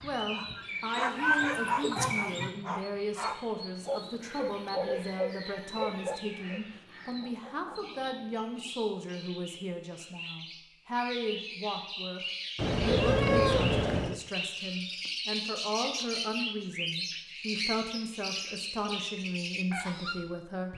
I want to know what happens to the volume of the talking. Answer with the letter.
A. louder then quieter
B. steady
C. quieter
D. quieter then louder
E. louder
B.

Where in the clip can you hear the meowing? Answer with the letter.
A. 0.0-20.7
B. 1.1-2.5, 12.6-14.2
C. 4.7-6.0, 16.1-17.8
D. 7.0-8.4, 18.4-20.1
B.